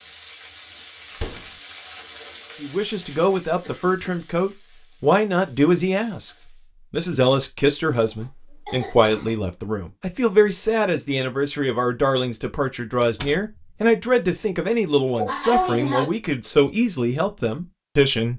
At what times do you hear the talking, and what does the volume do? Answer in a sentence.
You can hear the talking from 2.6 to 18.3 s, at a steady volume.